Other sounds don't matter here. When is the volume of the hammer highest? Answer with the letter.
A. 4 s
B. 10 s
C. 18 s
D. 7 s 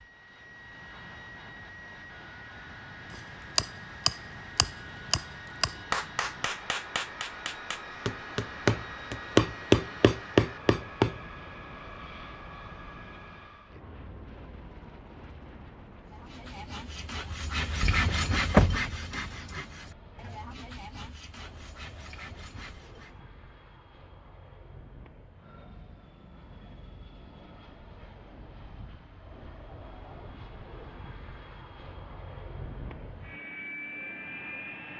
B.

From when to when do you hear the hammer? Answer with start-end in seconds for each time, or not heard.
3.1-11.2.